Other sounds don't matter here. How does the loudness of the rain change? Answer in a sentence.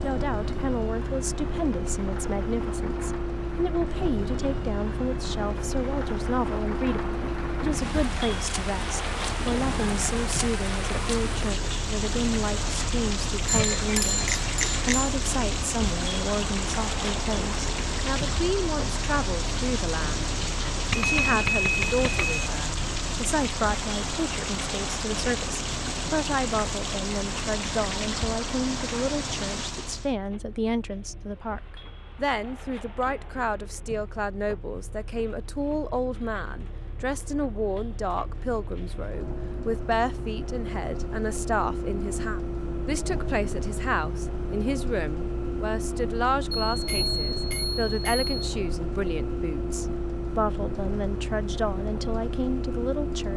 The volume of the rain goes up.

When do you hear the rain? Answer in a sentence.
You can hear the rain from 0.0 to 30.1 s.